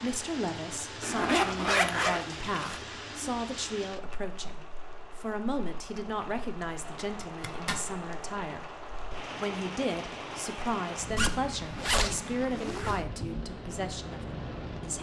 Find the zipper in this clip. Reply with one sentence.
You can hear the zipper from 1.0 to 2.8 s, from 7.0 to 7.8 s and from 11.2 to 13.1 s.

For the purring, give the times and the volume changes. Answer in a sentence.
You can't hear the purring here.